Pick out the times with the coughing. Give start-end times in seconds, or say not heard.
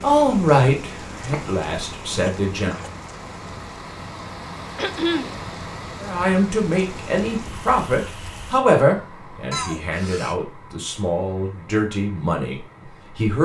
1.3-2.9, 4.8-5.3, 9.5-10.3.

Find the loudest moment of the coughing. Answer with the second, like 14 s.
5 s.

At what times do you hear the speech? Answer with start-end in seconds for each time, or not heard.
0.0-2.8, 6.0-13.3.